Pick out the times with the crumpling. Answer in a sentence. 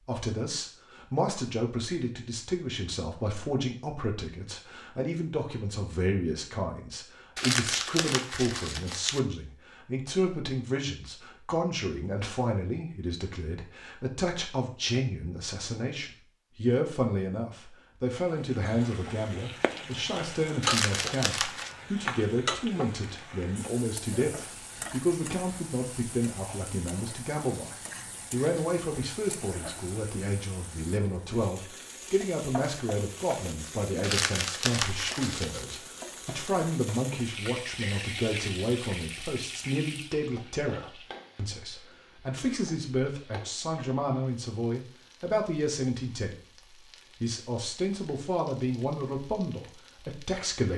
The crumpling can be heard from 7.3 to 9.2 s, from 20.6 to 21.8 s and from 34.0 to 35.6 s.